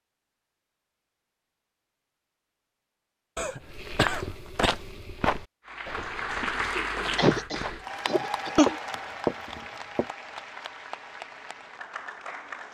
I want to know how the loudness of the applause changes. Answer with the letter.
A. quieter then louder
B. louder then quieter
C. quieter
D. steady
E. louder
C.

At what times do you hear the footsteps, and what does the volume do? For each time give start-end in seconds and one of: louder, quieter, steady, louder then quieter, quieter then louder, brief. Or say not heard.
3.6-7.8 quieter then louder
8.7-10.1 brief.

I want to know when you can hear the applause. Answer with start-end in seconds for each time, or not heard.
5.7-12.6.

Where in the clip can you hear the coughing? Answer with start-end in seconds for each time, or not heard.
3.4-4.8, 7.2-8.8.